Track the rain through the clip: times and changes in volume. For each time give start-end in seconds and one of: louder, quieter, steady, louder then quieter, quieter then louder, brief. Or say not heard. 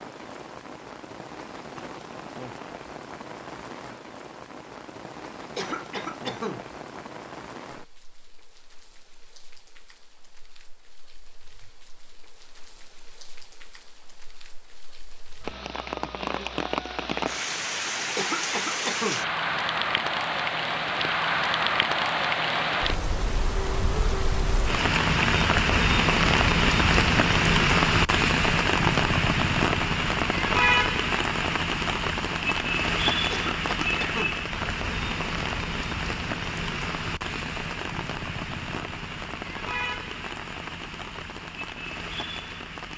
0.0-42.9 louder then quieter.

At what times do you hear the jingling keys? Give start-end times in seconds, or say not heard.
not heard.